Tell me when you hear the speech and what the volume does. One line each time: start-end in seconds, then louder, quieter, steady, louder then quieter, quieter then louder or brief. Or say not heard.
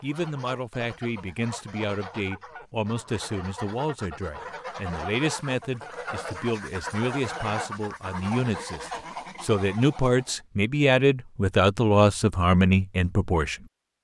0.0-13.7 louder.